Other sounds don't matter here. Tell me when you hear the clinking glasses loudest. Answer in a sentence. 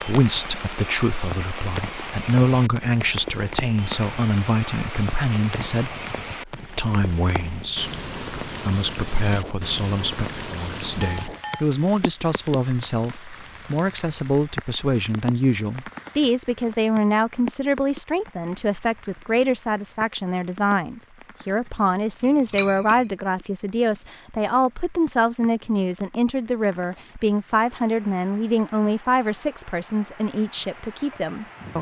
The loudest moment of the clinking glasses is at 11 seconds.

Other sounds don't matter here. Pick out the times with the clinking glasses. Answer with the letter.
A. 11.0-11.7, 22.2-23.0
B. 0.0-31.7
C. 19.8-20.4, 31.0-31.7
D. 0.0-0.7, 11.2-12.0
A.